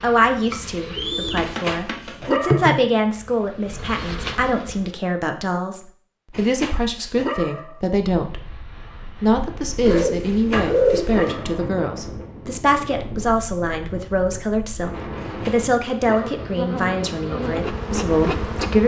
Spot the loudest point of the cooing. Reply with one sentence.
The loudest moment of the cooing is at 11 seconds.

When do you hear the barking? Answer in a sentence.
The barking can be heard from 1.4 to 2.8 s, from 6.3 to 7.8 s, from 10.2 to 11.7 s and from 15.2 to 16.6 s.